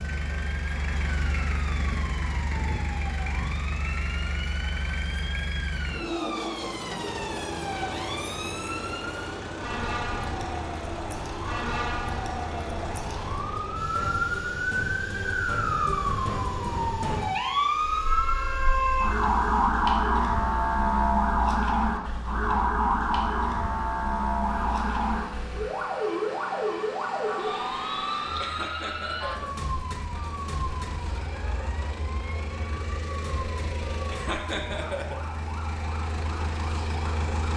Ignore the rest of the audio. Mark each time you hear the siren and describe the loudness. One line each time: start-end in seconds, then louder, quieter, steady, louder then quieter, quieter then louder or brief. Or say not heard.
0.0-37.5 louder then quieter.